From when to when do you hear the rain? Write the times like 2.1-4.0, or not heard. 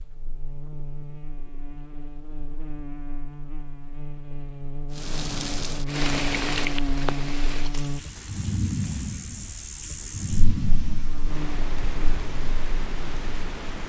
4.9-13.8.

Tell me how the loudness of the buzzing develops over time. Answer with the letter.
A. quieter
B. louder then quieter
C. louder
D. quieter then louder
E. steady
B.